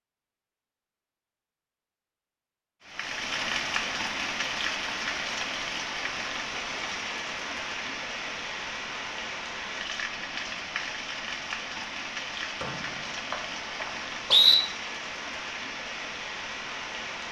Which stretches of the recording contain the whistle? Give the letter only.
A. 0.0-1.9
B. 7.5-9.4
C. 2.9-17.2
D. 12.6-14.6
D.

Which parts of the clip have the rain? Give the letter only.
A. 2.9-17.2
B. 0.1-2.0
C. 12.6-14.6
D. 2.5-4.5
A.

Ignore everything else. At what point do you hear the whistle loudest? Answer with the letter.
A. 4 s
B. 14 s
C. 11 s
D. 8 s
B.